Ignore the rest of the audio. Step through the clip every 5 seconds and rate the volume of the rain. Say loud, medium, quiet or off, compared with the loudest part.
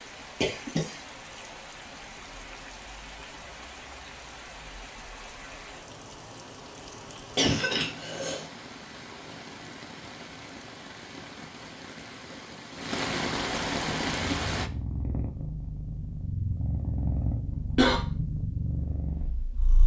medium, medium, loud, off.